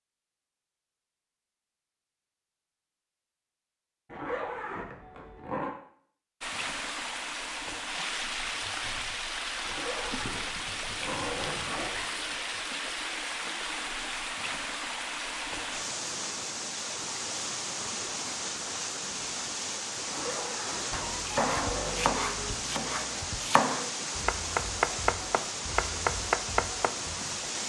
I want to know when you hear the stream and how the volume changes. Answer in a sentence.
The stream can be heard from 6.4 to 27.6 s, at a steady volume.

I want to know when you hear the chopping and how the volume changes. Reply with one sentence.
The chopping can be heard from 20.9 to 27.1 s, getting quieter then louder.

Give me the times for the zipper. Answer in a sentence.
The zipper can be heard from 4.0 to 5.7 s, from 9.7 to 12.2 s and from 20.1 to 22.1 s.